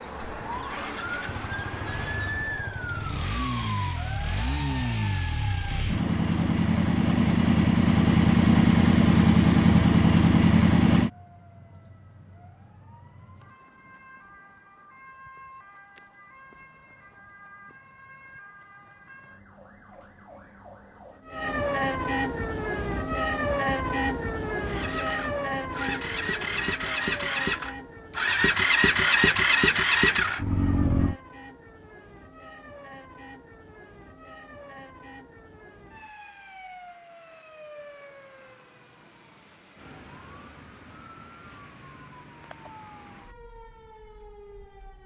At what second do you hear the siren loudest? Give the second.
24 s.